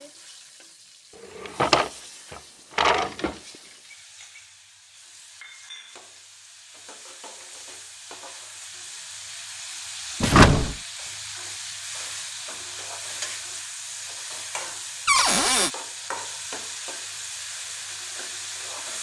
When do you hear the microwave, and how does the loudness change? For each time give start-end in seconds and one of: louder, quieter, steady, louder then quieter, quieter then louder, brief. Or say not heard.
not heard.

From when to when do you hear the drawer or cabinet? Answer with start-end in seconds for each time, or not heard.
1.4-1.9, 2.8-3.4, 10.2-10.8, 15.1-15.7.